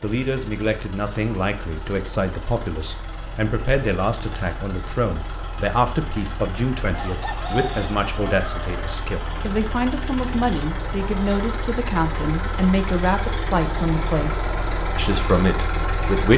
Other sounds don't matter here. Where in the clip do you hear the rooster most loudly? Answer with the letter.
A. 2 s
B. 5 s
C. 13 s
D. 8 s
D.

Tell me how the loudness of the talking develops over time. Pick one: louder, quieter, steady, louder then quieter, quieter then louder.
steady.